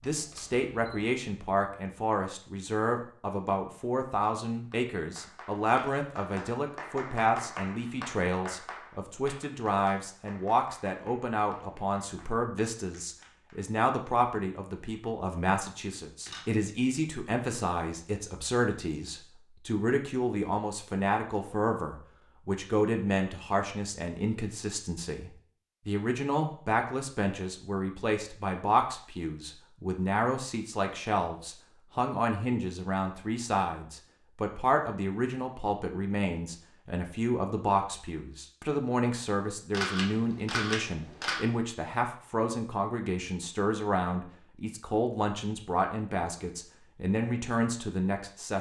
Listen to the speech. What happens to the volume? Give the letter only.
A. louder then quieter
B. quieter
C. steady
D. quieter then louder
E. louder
C.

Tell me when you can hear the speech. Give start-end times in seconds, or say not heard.
0.0-48.5.